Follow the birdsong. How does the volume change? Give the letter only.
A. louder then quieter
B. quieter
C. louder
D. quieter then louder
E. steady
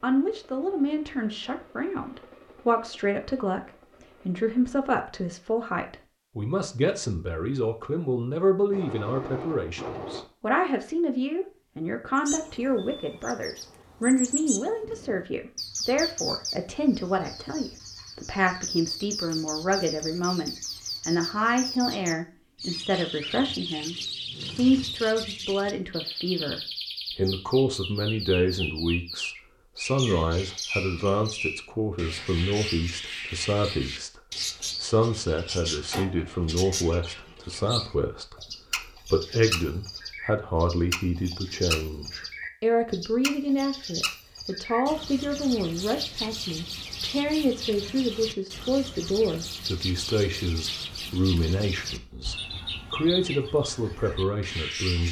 E.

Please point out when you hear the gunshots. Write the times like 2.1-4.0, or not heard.
8.7-10.2.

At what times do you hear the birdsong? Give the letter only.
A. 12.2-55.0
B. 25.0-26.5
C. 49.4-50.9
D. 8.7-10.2
A.